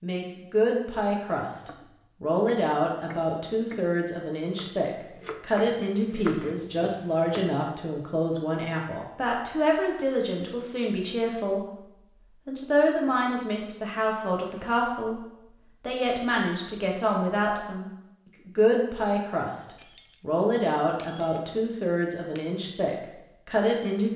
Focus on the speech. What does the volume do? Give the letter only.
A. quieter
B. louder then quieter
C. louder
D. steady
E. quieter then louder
D.